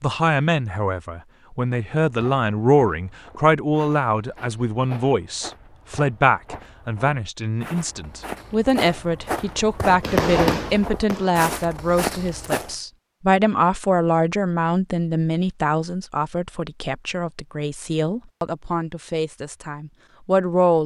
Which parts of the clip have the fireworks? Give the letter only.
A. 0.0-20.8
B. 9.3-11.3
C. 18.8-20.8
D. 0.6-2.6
B.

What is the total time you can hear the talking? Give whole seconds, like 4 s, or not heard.
21 s.